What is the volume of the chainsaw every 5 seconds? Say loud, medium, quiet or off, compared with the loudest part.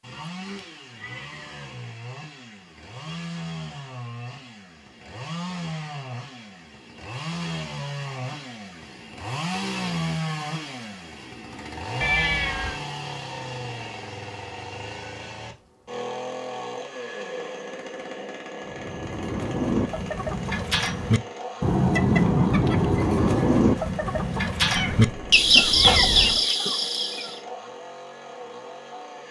medium, loud, loud, loud, medium, medium.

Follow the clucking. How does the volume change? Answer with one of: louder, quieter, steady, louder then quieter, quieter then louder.
louder.